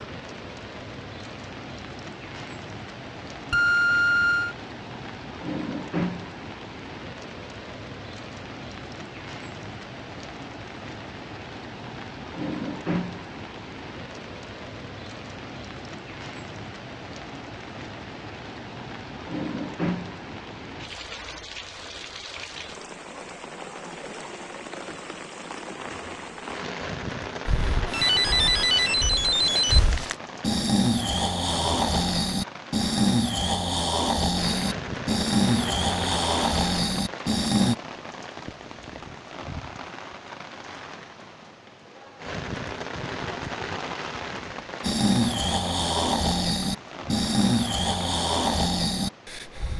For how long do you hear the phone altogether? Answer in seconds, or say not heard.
3 s.